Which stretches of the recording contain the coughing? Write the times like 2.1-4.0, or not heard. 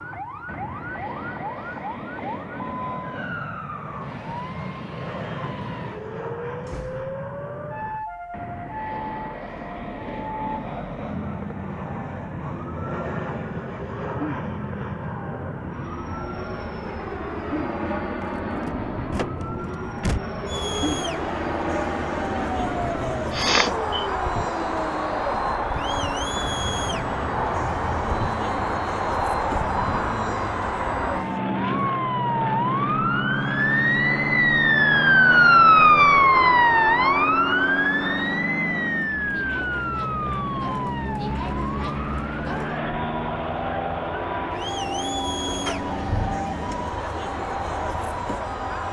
23.3-24.1.